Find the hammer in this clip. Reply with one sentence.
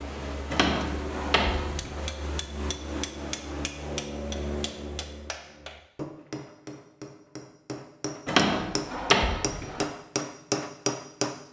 The hammer can be heard from 0.0 to 11.4 s.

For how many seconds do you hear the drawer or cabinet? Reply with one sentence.
The drawer or cabinet can be heard for 3 seconds in total.